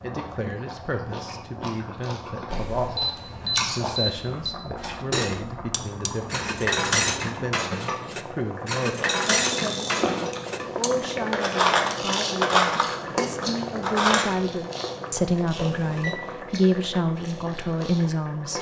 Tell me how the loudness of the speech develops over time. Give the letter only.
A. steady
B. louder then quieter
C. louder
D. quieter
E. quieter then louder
C.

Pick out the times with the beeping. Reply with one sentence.
You can hear the beeping from 2.5 to 4.5 s, from 9.3 to 10.1 s and from 15.6 to 16.2 s.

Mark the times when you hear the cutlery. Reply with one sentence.
The cutlery can be heard from 4.8 to 14.3 s.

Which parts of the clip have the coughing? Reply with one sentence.
The coughing can't be heard in this clip.